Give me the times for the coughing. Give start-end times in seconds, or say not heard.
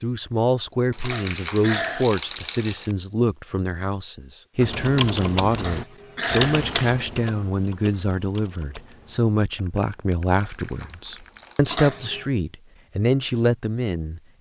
1.0-2.1, 5.5-6.6, 11.7-12.3.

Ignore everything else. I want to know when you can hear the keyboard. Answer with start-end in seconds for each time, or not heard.
4.5-11.6.